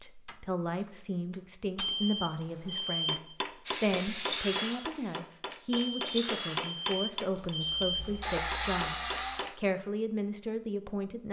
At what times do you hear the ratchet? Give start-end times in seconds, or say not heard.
not heard.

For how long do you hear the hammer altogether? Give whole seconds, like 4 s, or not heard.
9 s.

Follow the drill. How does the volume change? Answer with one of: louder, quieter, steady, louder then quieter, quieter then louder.
quieter then louder.